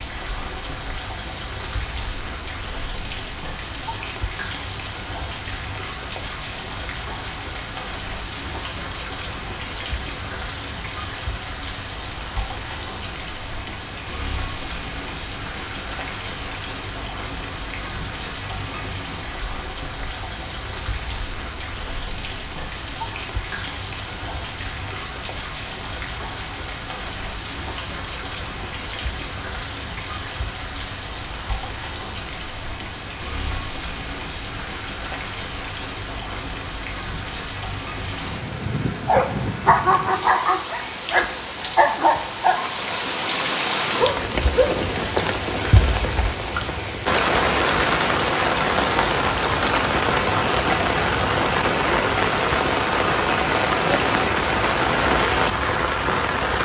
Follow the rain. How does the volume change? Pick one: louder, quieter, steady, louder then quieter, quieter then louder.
louder.